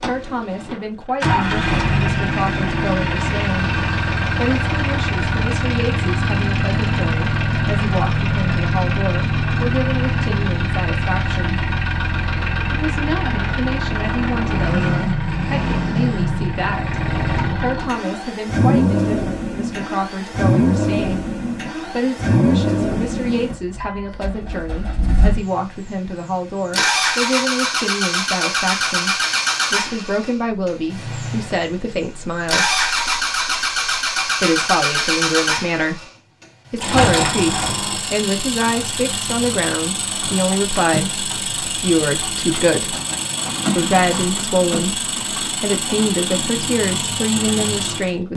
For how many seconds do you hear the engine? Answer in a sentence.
The engine can be heard for 48 seconds in total.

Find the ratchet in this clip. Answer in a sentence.
You can't hear the ratchet here.